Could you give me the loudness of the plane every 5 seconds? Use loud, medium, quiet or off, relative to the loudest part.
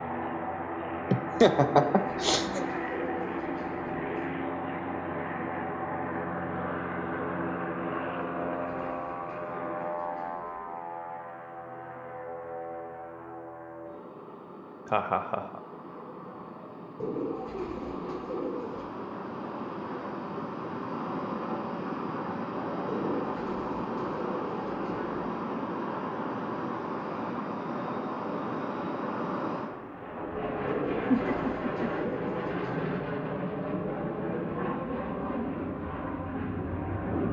loud, loud, medium, medium, loud, loud, loud, loud.